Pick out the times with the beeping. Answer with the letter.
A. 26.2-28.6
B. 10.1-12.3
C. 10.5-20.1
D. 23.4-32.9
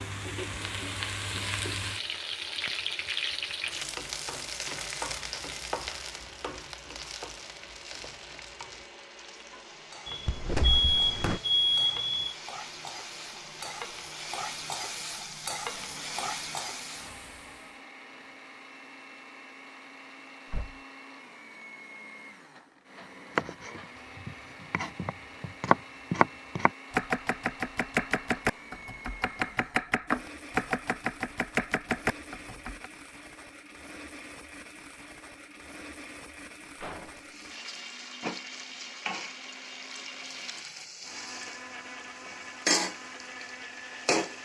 B.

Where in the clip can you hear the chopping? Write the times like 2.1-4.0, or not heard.
23.4-32.9.